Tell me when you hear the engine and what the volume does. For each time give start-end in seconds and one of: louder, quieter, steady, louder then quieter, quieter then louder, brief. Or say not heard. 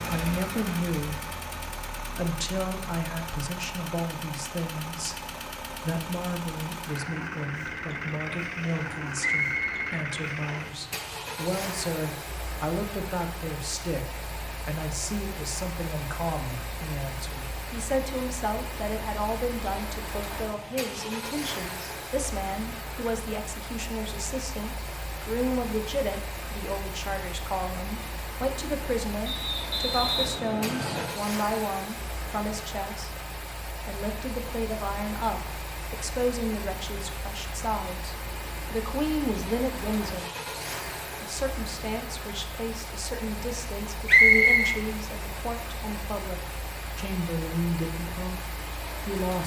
0.0-49.4 steady.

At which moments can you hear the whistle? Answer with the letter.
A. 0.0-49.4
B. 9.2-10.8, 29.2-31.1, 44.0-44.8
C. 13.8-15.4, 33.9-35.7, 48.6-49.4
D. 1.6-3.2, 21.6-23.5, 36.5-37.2
B.